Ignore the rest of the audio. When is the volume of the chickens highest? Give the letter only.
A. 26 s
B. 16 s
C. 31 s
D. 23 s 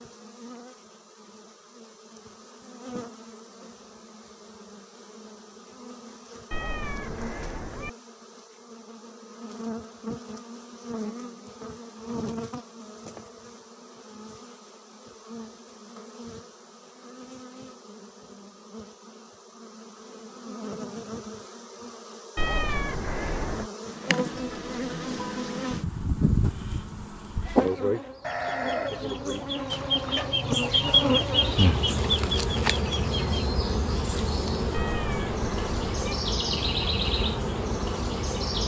C.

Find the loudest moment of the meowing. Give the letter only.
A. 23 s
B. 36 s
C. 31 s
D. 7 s
A.